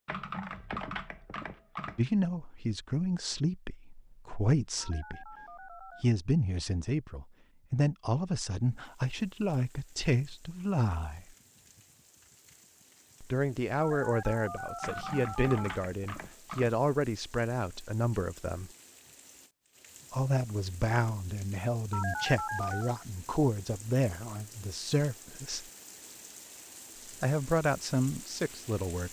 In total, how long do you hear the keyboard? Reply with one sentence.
You can hear the keyboard for 4 seconds altogether.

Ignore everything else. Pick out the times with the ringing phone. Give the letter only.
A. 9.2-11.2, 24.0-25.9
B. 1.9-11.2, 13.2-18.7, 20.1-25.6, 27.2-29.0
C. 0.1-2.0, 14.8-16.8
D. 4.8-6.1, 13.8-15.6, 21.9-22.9
D.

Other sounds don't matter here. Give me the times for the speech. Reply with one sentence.
The speech can be heard from 1.9 to 11.2 s, from 13.2 to 18.7 s, from 20.1 to 25.6 s and from 27.2 to 29.0 s.